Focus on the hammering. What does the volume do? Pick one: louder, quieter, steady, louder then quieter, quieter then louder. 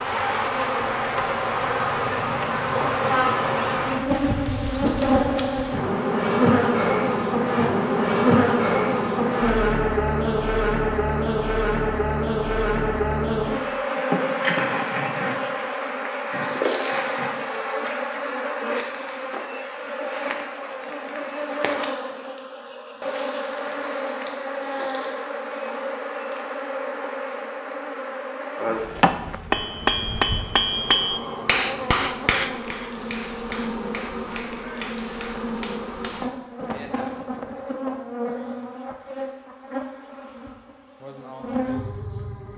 quieter.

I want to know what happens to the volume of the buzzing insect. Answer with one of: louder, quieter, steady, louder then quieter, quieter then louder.
quieter.